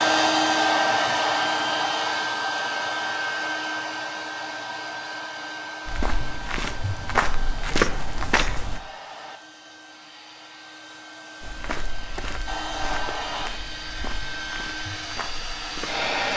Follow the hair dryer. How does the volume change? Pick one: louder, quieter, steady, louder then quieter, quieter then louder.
quieter then louder.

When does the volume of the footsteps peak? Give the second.
8 s.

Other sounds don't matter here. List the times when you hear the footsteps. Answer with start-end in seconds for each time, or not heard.
5.8-8.8, 11.4-16.1.